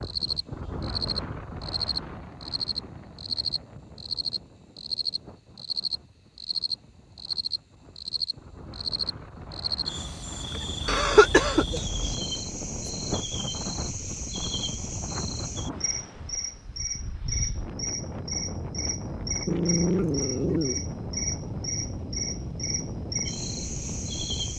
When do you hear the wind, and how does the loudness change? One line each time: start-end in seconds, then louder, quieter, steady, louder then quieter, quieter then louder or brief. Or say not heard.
0.0-24.5 quieter then louder.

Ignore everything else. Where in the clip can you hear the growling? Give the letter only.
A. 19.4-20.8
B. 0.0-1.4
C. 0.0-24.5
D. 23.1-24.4
A.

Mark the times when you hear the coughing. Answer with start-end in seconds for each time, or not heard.
10.8-12.2.